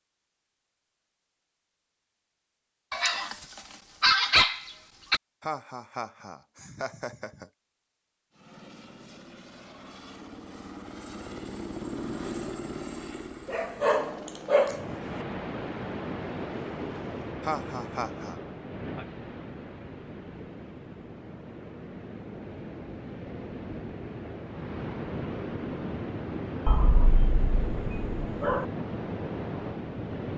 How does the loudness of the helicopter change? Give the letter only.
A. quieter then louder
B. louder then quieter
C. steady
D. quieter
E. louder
B.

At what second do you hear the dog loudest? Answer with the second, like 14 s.
4 s.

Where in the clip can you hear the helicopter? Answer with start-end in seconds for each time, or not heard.
8.3-17.4.